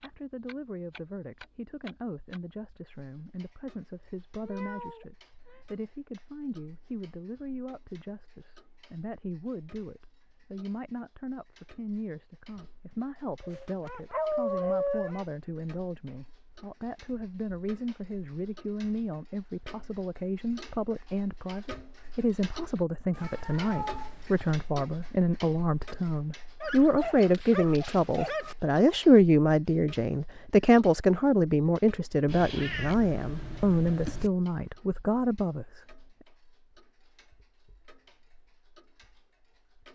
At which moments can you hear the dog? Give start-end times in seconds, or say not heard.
13.4-15.2, 26.6-28.6.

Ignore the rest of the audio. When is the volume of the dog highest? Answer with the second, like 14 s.
15 s.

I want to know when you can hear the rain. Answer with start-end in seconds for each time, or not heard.
not heard.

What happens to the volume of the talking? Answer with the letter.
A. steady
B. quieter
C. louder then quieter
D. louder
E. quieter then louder
D.